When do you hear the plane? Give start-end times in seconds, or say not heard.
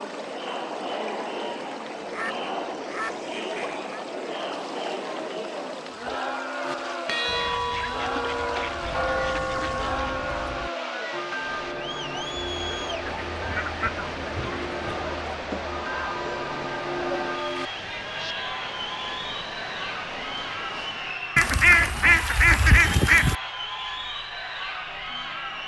not heard.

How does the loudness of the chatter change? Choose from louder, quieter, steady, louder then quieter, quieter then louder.
steady.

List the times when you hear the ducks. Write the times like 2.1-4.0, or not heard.
2.0-4.0, 7.2-9.9, 13.1-15.1, 21.4-23.4.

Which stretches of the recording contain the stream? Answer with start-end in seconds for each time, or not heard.
0.0-21.2.